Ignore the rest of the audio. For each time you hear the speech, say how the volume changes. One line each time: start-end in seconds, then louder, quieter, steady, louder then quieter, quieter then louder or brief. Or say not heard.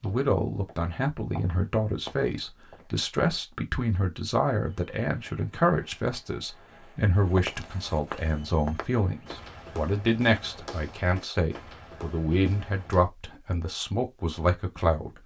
0.0-15.2 steady.